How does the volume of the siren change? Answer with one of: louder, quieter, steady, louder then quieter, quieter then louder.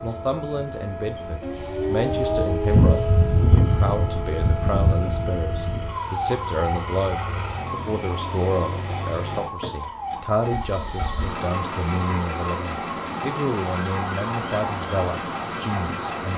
quieter.